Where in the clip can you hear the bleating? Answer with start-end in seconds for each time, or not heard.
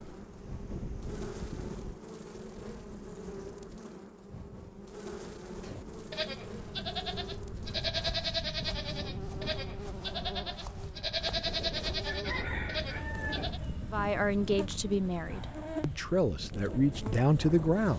5.6-13.6.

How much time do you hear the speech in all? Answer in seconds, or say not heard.
4 s.